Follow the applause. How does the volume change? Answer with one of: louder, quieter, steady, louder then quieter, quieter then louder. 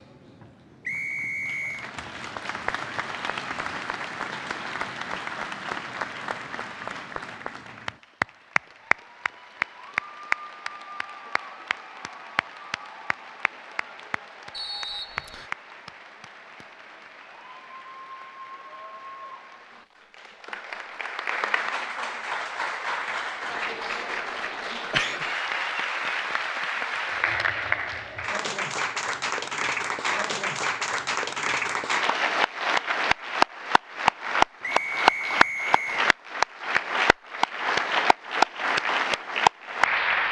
louder.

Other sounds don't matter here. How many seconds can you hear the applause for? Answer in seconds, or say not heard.
40 s.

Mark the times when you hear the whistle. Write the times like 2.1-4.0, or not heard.
0.8-1.9, 14.5-15.5, 34.6-36.1.